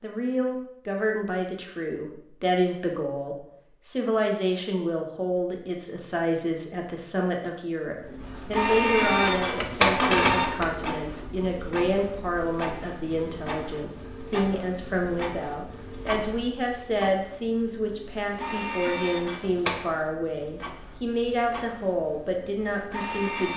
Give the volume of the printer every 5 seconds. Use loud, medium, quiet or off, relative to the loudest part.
off, loud, medium, medium, quiet.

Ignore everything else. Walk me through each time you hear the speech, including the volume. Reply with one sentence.
The speech can be heard from 0.0 to 23.5 s, at a steady volume.